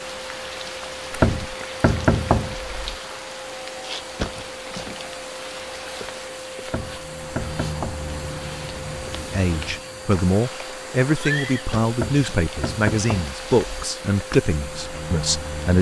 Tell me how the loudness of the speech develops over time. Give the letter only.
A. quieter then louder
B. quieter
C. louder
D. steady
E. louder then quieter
D.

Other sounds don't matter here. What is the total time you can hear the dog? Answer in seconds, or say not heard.
not heard.